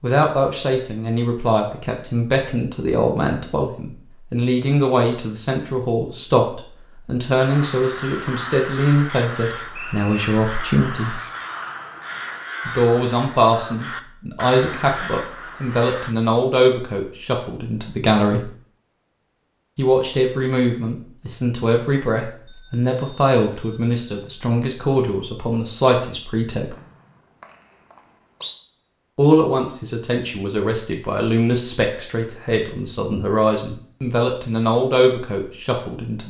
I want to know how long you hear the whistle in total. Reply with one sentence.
The whistle can be heard for 3 seconds in total.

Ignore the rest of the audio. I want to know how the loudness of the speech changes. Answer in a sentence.
The volume of the speech stays about the same.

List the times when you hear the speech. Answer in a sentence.
You can hear the speech from 0.0 to 11.2 s, from 12.7 to 18.5 s, from 19.8 to 26.8 s and from 29.1 to 36.2 s.